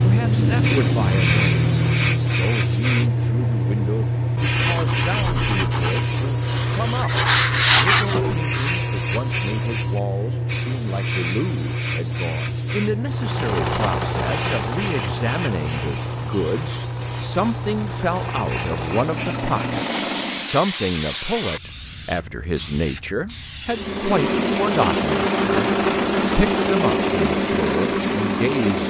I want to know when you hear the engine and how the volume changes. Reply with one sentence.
You can hear the engine briefly from 0.0 to 2.4 s; from 13.1 to 20.6 s, getting quieter then louder; and from 23.6 to 28.8 s, at a steady volume.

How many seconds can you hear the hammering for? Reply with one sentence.
You can't hear the hammering here.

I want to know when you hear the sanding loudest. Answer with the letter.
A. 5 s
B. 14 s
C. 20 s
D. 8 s
D.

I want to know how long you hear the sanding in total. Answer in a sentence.
The sanding can be heard for 4 seconds in total.